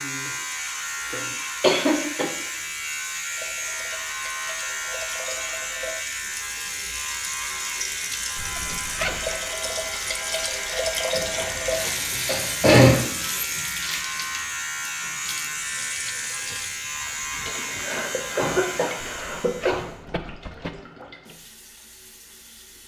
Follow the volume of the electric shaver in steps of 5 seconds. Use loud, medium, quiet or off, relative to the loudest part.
loud, loud, loud, loud, off.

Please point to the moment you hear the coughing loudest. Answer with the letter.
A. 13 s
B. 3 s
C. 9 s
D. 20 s
A.